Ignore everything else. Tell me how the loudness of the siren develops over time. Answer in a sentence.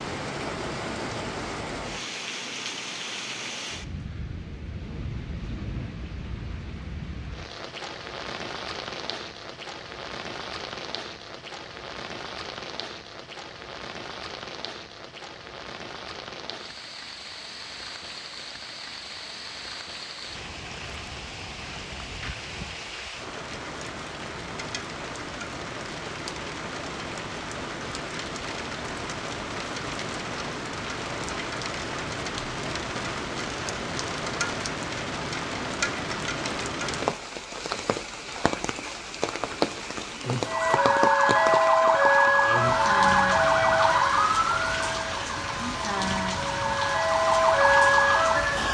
The loudness of the siren goes down, then up.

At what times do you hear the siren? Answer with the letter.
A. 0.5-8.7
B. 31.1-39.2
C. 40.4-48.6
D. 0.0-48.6
C.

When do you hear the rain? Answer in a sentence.
The rain can be heard from 0.0 to 48.6 s.